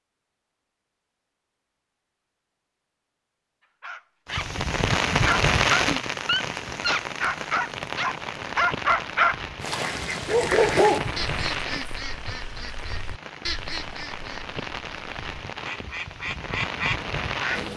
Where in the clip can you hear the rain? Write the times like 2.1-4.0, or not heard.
4.2-17.7.